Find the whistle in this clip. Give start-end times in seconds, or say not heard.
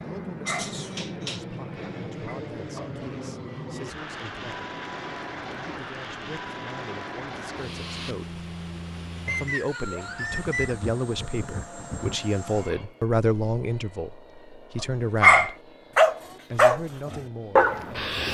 9.2-10.8.